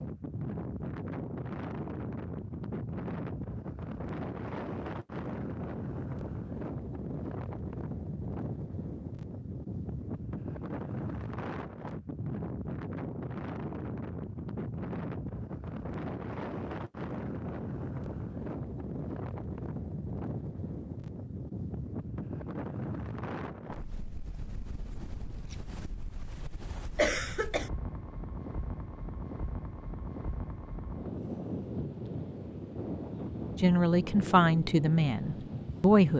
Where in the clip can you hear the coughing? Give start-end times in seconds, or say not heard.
26.9-27.7.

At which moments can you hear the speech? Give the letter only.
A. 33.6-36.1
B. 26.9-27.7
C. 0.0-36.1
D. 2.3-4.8
A.